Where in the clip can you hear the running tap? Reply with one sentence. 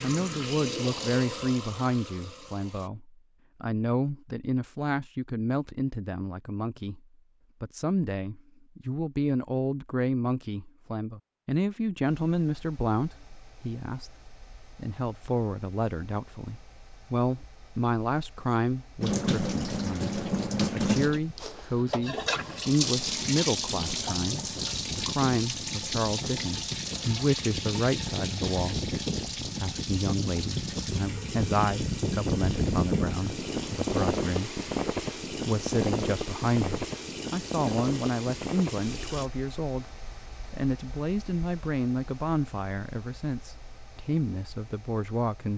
You can hear the running tap from 0.0 to 2.9 s and from 19.0 to 39.3 s.